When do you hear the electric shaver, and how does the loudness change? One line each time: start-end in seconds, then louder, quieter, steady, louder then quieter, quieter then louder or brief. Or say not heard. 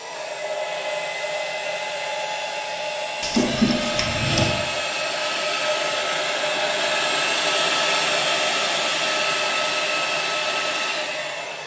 not heard.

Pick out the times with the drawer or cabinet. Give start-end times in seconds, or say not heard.
3.2-4.5.